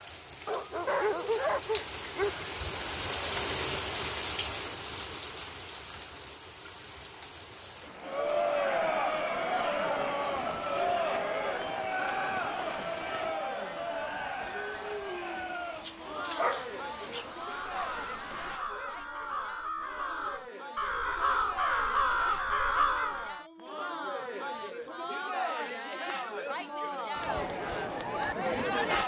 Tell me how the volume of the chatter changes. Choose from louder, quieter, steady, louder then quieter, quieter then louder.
quieter then louder.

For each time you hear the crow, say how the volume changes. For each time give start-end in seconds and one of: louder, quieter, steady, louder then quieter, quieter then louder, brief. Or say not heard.
17.4-23.4 louder.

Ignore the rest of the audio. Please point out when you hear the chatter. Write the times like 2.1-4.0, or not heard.
8.0-29.0.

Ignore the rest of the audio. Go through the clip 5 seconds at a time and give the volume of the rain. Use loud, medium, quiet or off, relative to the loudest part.
loud, medium, medium, quiet, off, off.